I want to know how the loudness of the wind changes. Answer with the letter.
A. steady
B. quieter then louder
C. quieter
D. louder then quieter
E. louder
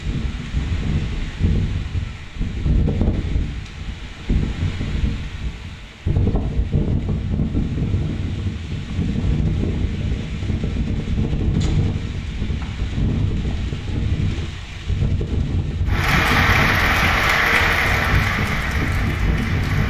A.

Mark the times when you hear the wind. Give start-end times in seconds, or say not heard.
0.0-19.8.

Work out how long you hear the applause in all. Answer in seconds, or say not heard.
4 s.